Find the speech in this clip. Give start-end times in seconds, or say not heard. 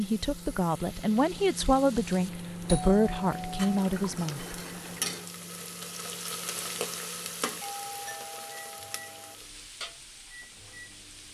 0.0-4.5.